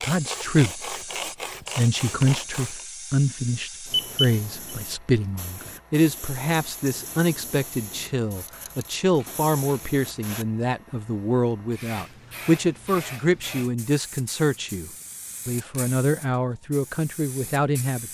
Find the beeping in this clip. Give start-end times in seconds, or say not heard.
3.9-4.4.